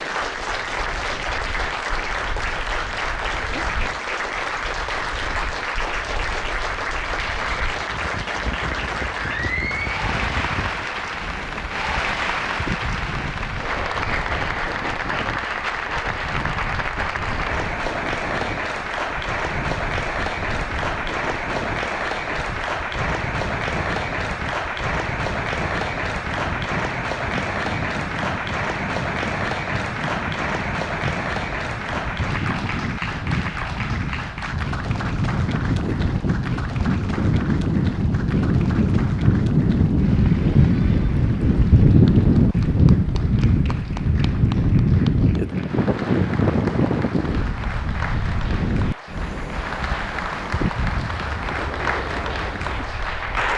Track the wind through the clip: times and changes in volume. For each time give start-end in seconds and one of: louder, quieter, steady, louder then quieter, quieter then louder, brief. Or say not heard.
0.2-53.5 louder.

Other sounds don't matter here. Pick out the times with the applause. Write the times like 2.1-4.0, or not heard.
0.0-53.5.